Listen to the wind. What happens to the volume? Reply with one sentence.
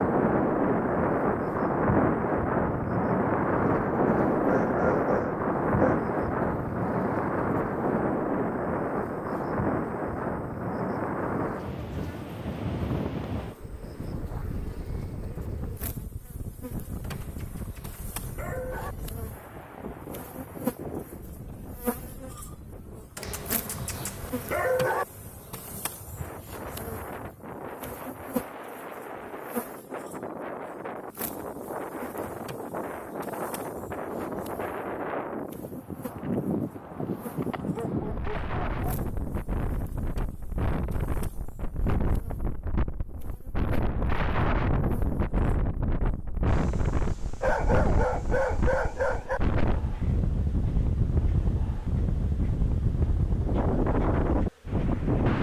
The loudness of the wind goes down, then up.